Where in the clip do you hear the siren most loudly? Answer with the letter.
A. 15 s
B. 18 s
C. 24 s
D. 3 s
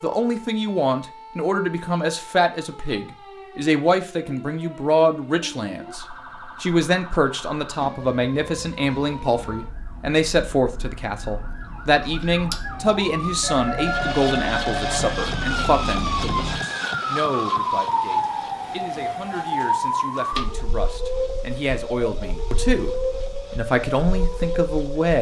B.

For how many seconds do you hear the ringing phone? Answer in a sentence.
The ringing phone can be heard for 2 seconds in total.